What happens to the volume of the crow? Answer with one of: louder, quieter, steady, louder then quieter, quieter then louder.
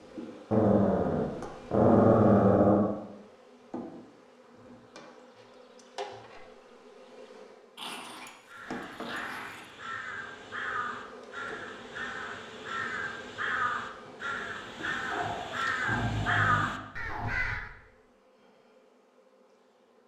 louder.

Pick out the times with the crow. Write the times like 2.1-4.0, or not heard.
8.4-17.7.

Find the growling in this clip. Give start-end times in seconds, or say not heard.
0.5-2.9, 7.8-9.8, 15.1-17.3.